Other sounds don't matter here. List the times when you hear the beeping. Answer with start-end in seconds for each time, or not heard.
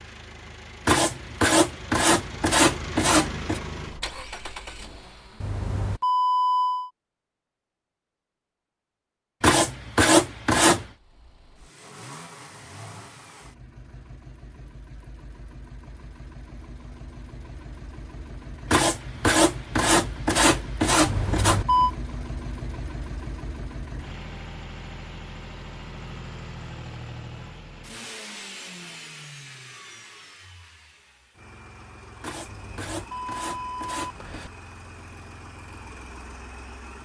5.4-6.9, 21.1-21.9, 32.5-34.5.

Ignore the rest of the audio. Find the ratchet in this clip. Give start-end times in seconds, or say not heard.
not heard.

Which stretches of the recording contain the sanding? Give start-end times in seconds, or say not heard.
0.8-3.6, 9.4-10.8, 18.7-21.6, 32.2-34.5.